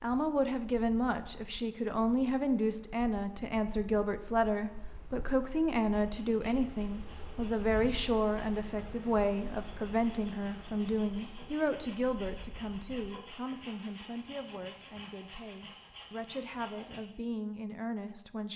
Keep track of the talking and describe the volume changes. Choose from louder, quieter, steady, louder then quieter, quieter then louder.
quieter.